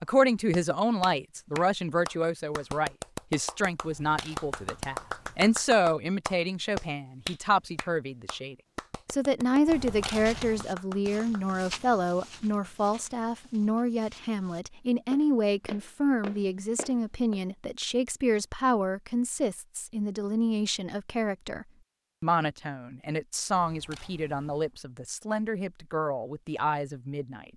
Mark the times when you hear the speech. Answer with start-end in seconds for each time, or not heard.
0.0-27.4.